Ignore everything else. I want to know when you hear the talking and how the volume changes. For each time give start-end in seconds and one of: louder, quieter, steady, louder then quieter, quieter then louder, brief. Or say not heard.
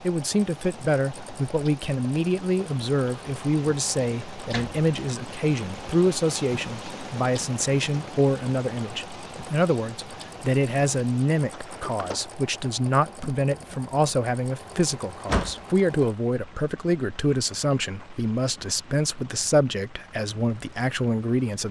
0.0-21.6 steady.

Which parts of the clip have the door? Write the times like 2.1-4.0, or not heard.
4.2-4.8, 11.4-12.2, 15.1-15.6.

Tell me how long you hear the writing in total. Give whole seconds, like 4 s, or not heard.
not heard.